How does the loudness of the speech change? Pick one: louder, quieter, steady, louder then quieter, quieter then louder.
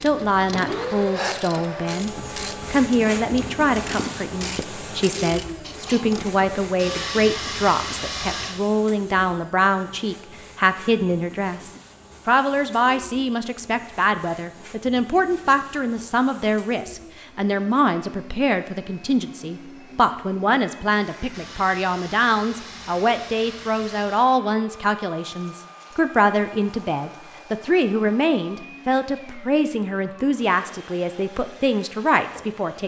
steady.